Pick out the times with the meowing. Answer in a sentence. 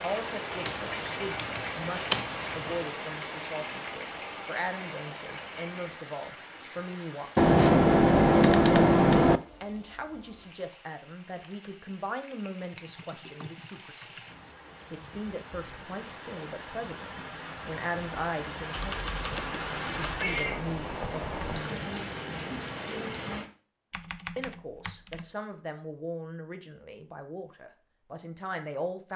The meowing can be heard from 20.1 to 21.5 s.